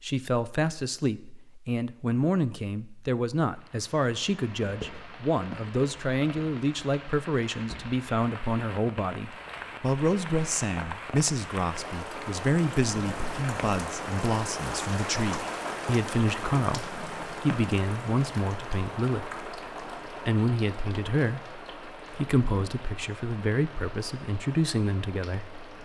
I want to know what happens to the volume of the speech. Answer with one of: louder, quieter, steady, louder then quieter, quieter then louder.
steady.